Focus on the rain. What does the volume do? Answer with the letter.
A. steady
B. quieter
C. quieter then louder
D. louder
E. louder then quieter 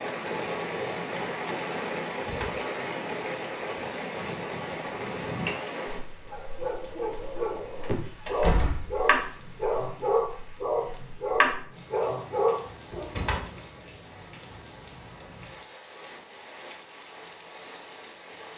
C.